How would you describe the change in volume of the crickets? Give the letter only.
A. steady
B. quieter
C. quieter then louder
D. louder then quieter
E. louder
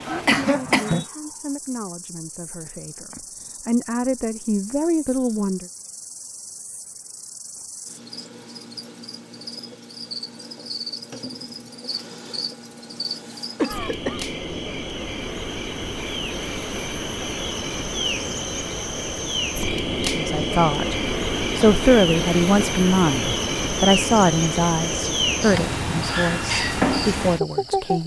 E.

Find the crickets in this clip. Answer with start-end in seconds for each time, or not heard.
0.0-28.0.